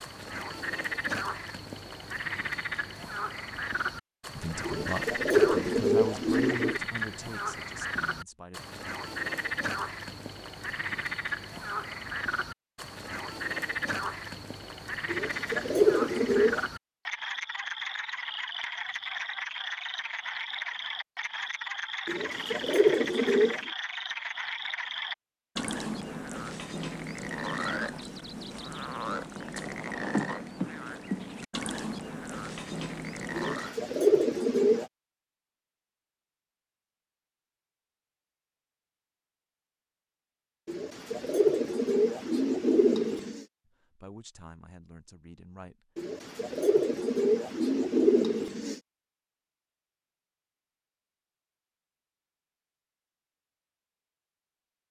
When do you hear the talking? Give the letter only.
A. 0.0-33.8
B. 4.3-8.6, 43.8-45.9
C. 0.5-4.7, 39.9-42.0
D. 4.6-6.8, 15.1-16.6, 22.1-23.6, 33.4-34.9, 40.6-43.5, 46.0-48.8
B.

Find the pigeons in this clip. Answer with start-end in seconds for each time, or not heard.
4.6-6.8, 15.1-16.6, 22.1-23.6, 33.4-34.9, 40.6-43.5, 46.0-48.8.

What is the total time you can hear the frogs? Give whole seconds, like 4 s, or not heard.
34 s.